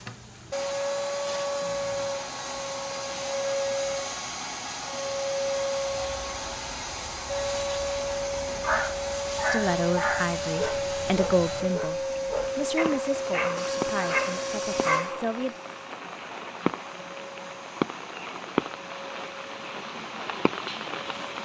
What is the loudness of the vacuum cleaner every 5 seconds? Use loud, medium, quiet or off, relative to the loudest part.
loud, loud, loud, quiet, quiet.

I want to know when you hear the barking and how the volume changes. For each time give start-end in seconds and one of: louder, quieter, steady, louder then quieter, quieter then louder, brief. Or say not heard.
8.6-15.2 quieter then louder.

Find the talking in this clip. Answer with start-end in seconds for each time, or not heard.
9.5-15.6.